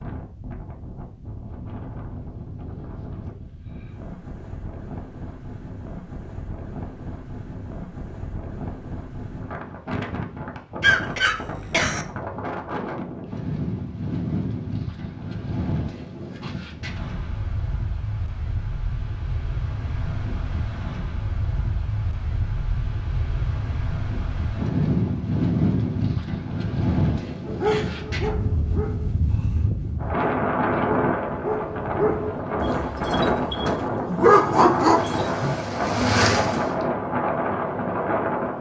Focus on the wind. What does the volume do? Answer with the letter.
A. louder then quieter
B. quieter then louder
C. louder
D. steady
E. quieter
C.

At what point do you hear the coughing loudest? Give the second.
11 s.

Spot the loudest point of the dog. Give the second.
34 s.